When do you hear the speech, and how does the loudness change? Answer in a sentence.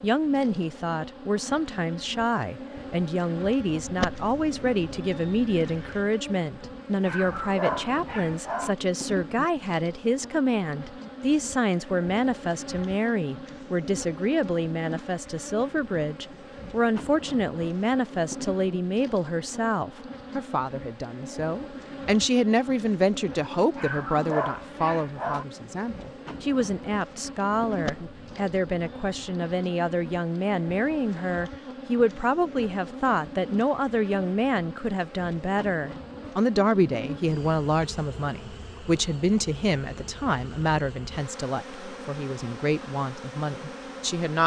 The speech can be heard from 0.0 to 44.4 s, at a steady volume.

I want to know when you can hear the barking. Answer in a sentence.
You can hear the barking from 7.0 to 8.8 s and from 23.8 to 25.4 s.